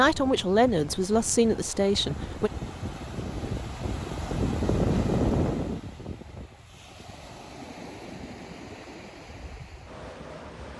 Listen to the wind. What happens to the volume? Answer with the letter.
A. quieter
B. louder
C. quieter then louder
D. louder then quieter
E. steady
D.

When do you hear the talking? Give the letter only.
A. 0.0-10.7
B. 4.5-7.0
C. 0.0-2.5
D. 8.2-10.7
C.